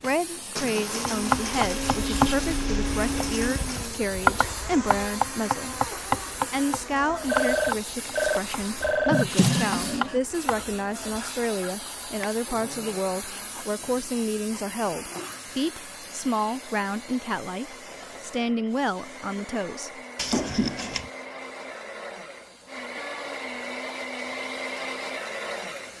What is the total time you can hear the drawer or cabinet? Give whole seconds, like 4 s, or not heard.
2 s.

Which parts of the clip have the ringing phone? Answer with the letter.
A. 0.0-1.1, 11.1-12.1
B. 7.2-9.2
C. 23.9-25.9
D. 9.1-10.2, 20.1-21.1
B.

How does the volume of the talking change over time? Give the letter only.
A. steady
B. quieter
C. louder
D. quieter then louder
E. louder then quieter
A.